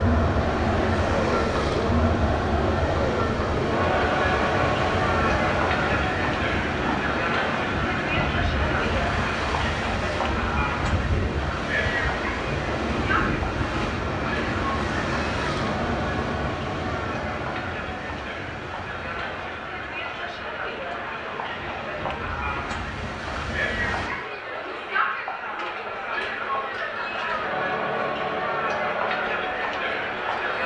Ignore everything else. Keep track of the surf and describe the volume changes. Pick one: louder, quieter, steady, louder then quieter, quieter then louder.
quieter.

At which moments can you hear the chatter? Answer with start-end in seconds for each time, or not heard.
0.0-30.6.